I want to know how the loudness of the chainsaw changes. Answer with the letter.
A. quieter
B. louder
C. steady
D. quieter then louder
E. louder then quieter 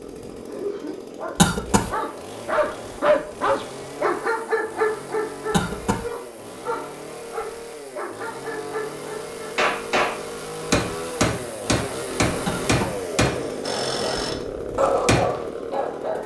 B.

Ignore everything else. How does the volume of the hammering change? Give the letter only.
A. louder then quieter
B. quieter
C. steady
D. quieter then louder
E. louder
B.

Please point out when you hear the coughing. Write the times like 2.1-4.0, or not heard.
1.4-1.9, 5.5-6.0, 12.4-13.0.